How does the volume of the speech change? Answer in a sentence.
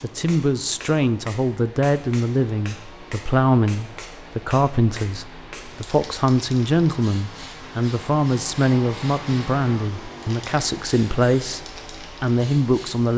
The loudness of the speech stays about the same.